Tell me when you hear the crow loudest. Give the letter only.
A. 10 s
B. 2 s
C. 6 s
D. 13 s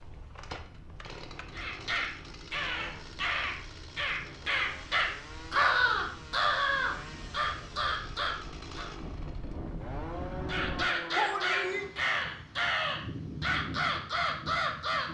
C.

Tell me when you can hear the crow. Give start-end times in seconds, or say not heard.
1.5-8.9, 10.4-15.1.